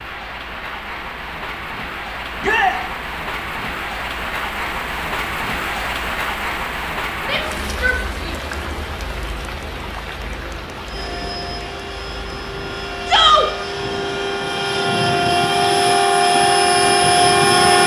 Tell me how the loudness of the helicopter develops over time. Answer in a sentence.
The loudness of the helicopter goes up.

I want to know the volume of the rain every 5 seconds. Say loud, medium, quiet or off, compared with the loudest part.
loud, loud, medium, off.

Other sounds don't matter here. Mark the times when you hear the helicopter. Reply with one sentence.
The helicopter can be heard from 10.8 to 17.8 s.